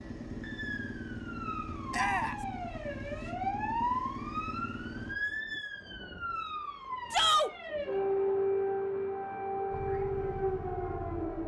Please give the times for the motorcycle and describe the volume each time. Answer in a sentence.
You can hear the motorcycle from 0.0 to 5.2 s, at a steady volume; and briefly from 9.7 to 11.4 s.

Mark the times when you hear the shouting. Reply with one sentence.
You can hear the shouting from 1.9 to 2.4 s and from 7.1 to 7.5 s.